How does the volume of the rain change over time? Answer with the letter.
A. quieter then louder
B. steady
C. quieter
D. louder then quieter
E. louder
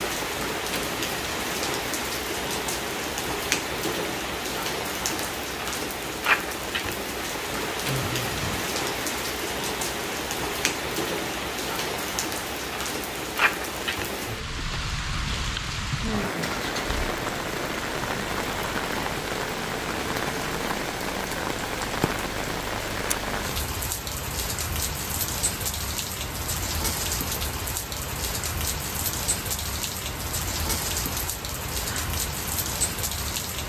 B.